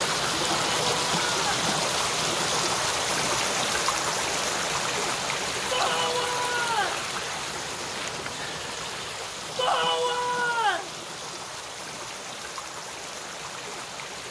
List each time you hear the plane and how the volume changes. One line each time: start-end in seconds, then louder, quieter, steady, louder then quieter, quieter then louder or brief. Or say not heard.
not heard.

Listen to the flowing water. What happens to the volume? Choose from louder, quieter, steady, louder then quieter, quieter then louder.
quieter.